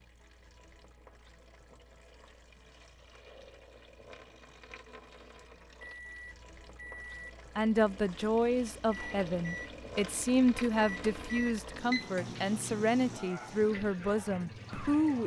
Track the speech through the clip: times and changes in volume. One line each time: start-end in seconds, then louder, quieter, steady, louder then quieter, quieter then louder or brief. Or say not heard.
7.5-15.2 steady.